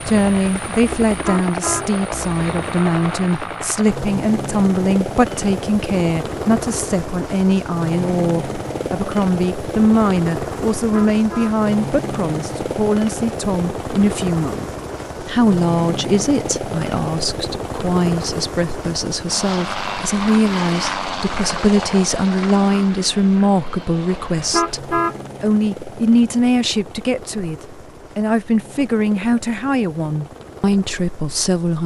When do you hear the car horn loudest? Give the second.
25 s.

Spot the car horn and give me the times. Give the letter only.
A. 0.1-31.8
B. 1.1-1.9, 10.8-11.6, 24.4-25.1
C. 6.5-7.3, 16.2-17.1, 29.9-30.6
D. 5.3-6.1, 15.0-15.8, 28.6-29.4
B.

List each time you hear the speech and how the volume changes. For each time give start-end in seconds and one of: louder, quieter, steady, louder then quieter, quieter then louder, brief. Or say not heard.
0.1-31.8 steady.